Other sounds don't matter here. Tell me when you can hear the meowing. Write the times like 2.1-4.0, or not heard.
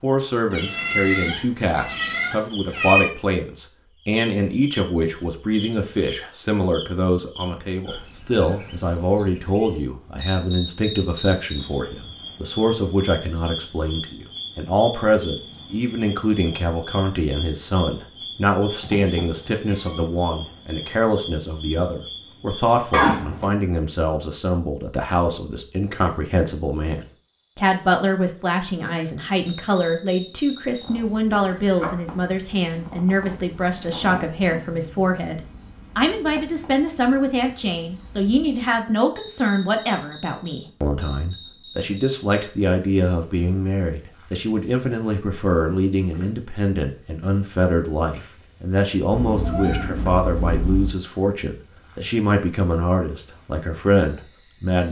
0.5-3.1, 18.8-20.1, 49.1-51.0.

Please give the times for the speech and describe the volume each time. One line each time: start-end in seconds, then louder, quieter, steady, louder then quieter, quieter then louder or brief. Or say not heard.
0.0-54.8 steady.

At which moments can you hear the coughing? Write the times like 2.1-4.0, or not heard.
22.9-23.5.